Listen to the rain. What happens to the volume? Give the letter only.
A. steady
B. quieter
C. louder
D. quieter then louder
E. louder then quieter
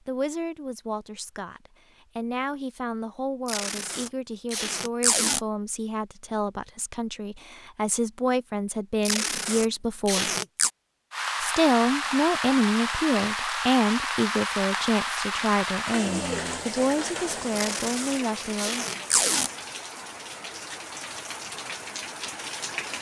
B.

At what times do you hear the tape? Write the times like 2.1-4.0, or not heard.
3.5-5.4, 9.0-10.7, 17.6-19.5.